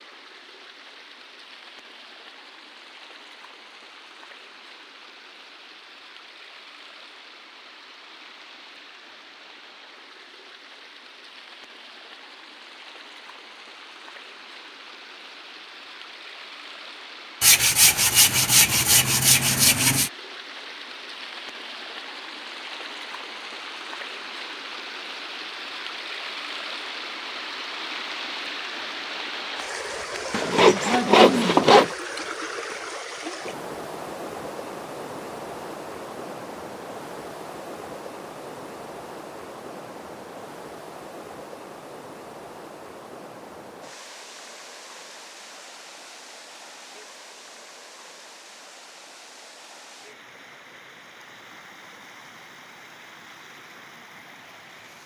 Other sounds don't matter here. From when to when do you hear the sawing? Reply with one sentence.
You can hear the sawing from 17.4 to 20.1 s and from 30.3 to 31.9 s.